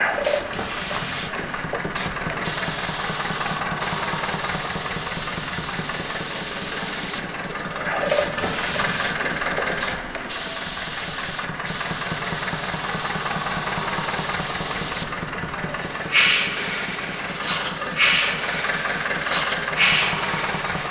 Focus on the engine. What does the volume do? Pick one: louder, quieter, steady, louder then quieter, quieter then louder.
steady.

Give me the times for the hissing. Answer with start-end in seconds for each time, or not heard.
0.0-20.8.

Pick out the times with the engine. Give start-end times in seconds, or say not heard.
0.0-20.8.